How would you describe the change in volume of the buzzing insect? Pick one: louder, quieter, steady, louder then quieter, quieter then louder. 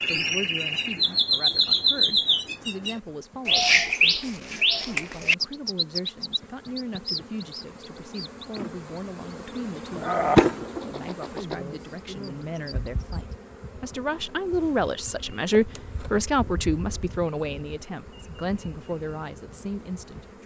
louder then quieter.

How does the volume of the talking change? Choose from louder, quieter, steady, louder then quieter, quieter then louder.
louder.